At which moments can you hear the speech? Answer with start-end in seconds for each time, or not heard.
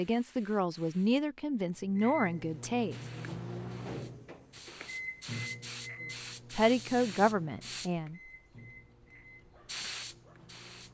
0.0-3.0, 6.5-8.2.